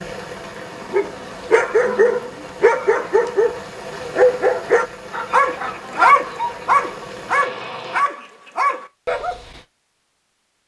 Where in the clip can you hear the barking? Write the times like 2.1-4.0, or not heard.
0.8-9.6.